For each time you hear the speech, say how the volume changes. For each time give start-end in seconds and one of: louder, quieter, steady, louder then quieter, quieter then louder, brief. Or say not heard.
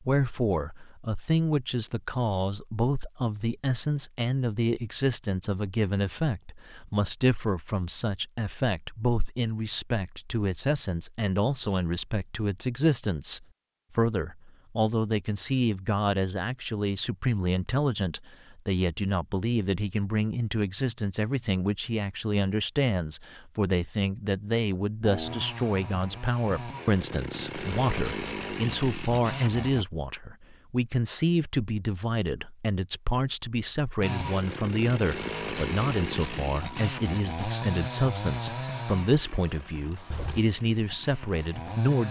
0.0-42.0 steady.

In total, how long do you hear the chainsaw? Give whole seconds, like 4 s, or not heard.
13 s.